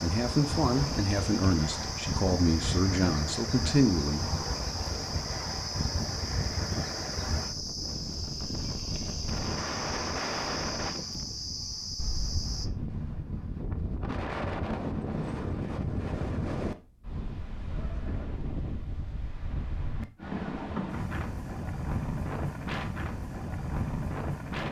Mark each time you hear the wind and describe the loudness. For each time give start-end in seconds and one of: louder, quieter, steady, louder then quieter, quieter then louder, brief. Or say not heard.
0.0-24.6 steady.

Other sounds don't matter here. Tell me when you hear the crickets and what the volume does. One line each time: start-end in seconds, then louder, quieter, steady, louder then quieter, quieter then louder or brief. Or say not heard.
0.0-12.7 steady.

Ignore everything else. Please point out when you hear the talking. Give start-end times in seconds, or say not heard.
0.0-4.3.